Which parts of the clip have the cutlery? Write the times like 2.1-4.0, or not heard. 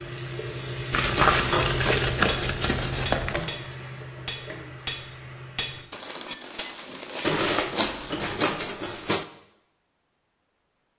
1.1-9.2.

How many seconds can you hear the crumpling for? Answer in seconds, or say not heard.
5 s.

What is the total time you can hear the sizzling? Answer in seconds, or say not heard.
6 s.